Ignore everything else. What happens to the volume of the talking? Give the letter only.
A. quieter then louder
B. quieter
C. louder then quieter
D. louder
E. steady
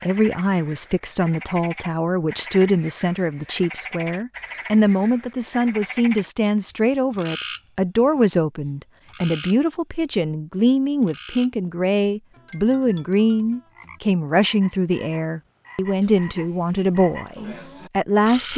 E.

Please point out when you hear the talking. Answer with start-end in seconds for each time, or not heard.
0.0-18.5.